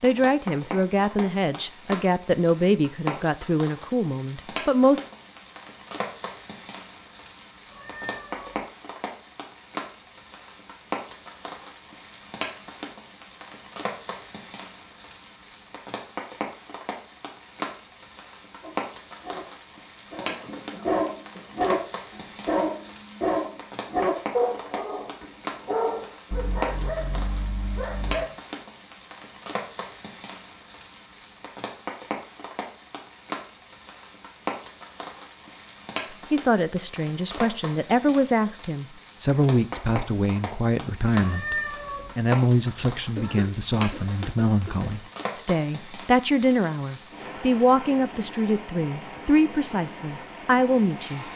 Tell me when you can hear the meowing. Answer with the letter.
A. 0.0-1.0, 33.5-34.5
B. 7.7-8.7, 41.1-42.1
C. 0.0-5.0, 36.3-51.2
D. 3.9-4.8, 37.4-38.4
B.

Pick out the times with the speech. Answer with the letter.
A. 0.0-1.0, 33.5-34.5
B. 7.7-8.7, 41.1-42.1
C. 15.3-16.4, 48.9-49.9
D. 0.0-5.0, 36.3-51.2
D.